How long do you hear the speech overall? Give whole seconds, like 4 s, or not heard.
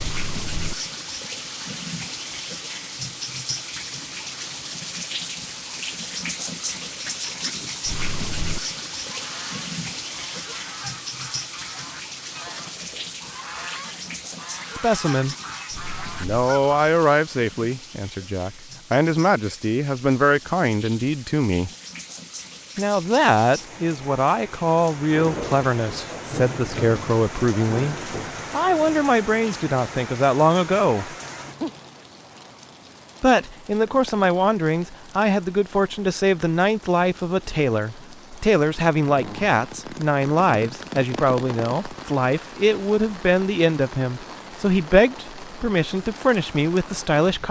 29 s.